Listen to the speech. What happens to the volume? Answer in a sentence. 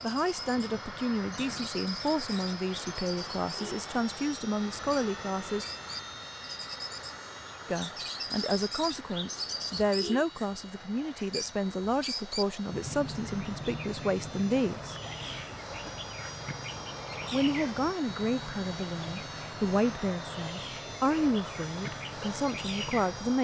The volume of the speech stays about the same.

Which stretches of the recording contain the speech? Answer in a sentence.
The speech can be heard from 0.0 to 5.7 s, from 7.7 to 14.9 s and from 17.3 to 23.3 s.